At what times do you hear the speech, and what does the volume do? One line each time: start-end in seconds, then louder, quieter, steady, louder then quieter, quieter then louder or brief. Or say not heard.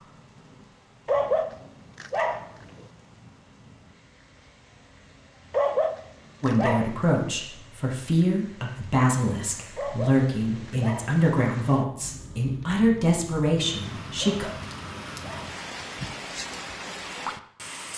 6.4-14.5 steady.